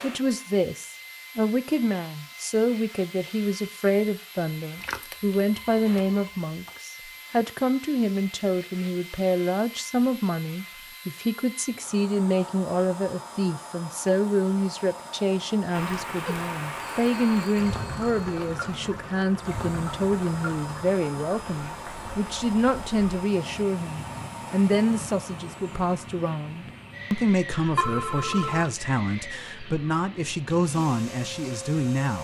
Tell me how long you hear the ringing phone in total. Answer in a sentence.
You can hear the ringing phone for 5 seconds altogether.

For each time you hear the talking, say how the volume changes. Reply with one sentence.
You can hear the talking from 0.0 to 32.2 s, at a steady volume.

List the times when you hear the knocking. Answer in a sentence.
The knocking can't be heard in this clip.